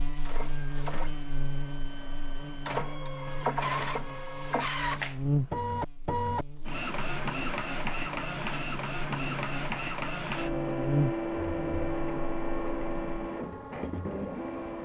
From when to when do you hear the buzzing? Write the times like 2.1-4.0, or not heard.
0.0-14.8.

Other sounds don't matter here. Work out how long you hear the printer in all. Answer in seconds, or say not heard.
15 s.